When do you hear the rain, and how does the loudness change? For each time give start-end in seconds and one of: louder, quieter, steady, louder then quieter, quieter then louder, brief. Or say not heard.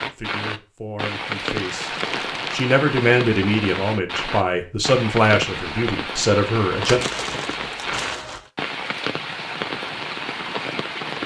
0.0-11.2 steady.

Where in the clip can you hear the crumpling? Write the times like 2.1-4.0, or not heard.
1.6-2.7, 6.8-8.5.